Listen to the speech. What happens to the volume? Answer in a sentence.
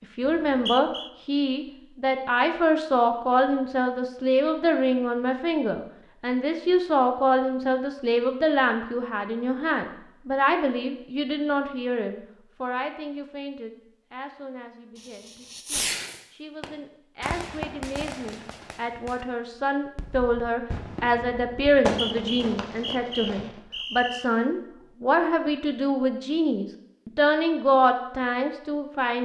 The loudness of the speech goes down, then up.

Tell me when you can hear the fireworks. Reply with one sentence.
You can hear the fireworks from 14.9 to 19.2 s and from 19.9 to 23.6 s.